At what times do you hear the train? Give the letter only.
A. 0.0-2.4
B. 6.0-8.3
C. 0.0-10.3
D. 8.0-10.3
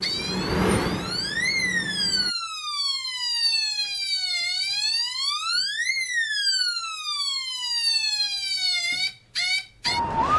A.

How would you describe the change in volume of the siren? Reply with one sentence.
The volume of the siren stays about the same.